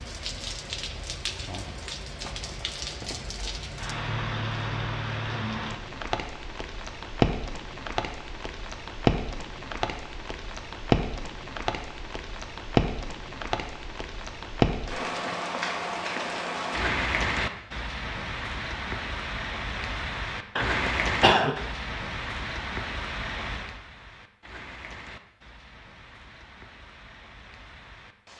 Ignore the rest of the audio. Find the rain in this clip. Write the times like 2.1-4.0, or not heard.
0.0-28.3.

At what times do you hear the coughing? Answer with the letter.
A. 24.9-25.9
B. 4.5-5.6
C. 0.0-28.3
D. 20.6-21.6
D.